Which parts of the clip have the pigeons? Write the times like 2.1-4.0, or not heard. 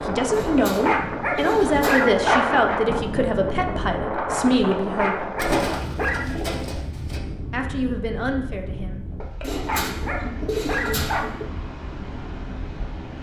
0.3-2.1, 5.3-7.2, 9.4-11.4.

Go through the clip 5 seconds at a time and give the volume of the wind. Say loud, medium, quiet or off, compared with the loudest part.
loud, medium, medium.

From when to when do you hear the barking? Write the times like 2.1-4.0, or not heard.
0.3-2.8, 4.5-6.2, 9.2-11.3.